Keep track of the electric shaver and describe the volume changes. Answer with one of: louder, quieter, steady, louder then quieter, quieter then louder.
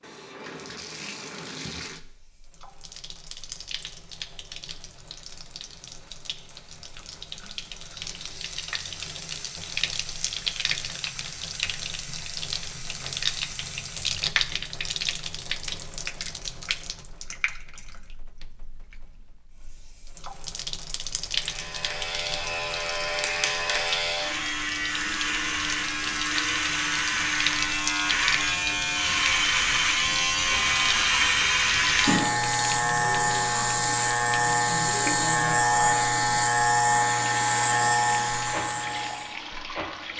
louder.